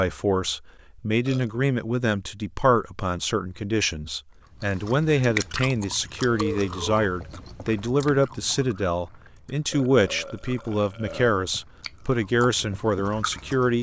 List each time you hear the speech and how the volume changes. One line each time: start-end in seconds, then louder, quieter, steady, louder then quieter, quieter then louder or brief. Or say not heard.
0.0-13.7 steady.